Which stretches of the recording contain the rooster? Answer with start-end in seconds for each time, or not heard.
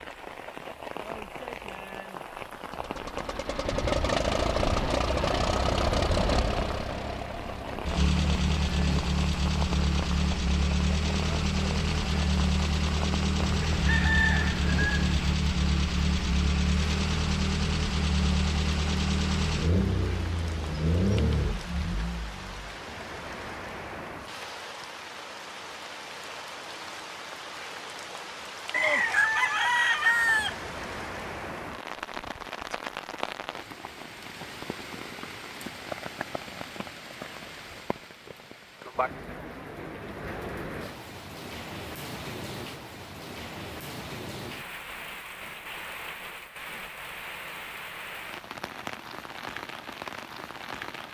13.4-15.3, 28.7-30.6.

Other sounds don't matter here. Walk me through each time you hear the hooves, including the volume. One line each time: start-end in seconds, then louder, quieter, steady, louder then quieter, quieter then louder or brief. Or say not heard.
not heard.